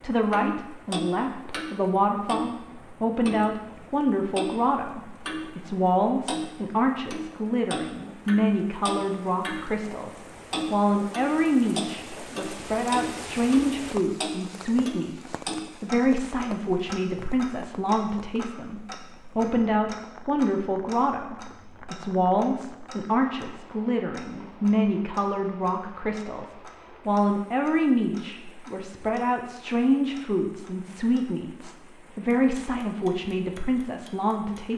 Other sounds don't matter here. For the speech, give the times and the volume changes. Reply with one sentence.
You can hear the speech from 0.0 to 34.7 s, at a steady volume.